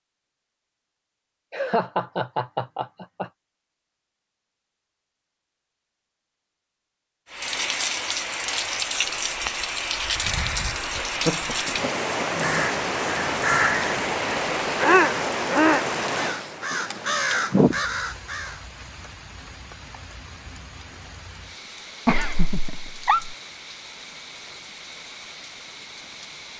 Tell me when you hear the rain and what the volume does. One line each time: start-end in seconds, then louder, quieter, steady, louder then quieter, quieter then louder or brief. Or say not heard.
7.3-26.5 quieter.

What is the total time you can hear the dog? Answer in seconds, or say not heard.
not heard.